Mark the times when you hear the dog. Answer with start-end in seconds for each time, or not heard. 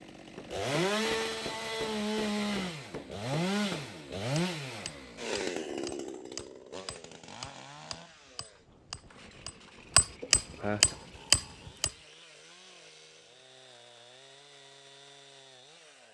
not heard.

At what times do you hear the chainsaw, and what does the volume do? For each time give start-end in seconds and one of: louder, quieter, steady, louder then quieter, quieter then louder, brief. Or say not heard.
0.0-16.0 quieter.